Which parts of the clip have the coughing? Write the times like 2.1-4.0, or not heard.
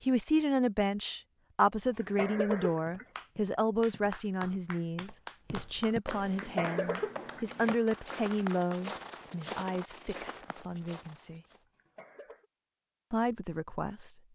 1.7-3.0, 6.3-7.5, 11.6-12.4.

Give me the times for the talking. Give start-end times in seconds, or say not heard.
0.0-11.4, 13.1-14.2.